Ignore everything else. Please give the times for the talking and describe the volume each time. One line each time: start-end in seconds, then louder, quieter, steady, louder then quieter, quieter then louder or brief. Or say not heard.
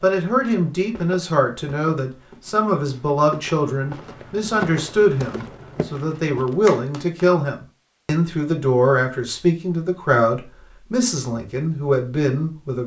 0.0-12.8 steady.